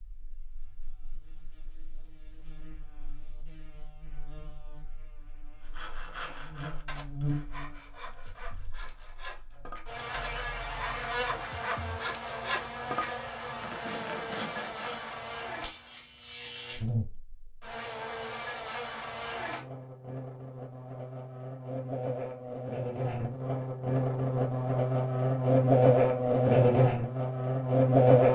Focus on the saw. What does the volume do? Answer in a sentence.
The volume of the saw goes up.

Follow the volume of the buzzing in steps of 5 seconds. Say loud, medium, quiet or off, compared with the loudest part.
quiet, quiet, quiet, quiet, medium, loud.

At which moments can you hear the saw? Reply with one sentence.
The saw can be heard from 5.7 to 15.1 s.